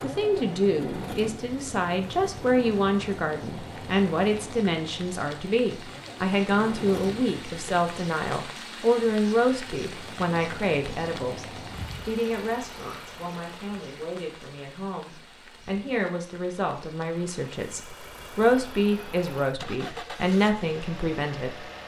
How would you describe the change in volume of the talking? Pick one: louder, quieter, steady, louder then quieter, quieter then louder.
quieter then louder.